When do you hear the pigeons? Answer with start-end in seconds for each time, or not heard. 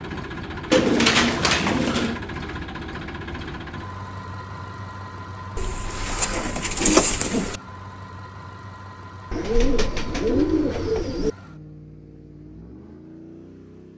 0.7-2.2, 5.5-7.6, 9.3-11.3.